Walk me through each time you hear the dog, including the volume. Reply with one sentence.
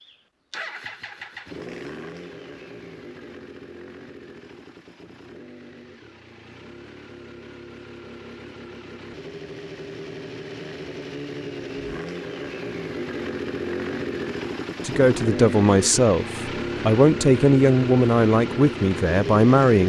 You can't hear the dog here.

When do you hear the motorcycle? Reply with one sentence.
You can hear the motorcycle from 0.0 to 19.8 s.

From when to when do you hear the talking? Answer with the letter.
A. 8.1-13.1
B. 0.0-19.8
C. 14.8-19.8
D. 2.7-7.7
C.